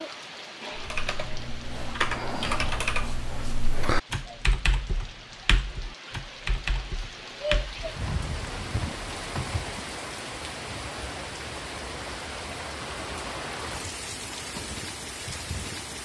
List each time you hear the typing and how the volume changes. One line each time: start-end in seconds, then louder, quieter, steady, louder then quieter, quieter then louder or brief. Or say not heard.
0.8-9.8 quieter.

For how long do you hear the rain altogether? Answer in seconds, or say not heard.
16 s.